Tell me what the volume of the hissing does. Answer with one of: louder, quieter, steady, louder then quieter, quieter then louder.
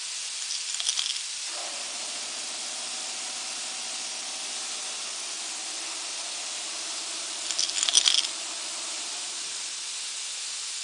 steady.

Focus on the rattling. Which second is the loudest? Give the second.
8 s.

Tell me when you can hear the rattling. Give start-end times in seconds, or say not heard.
0.3-1.2, 7.4-8.3.